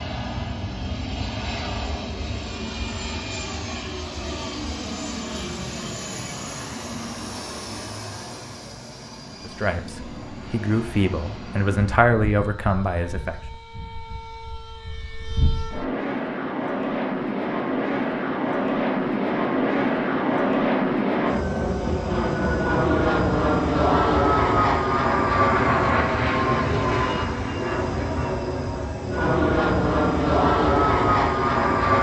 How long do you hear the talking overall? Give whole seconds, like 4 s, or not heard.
4 s.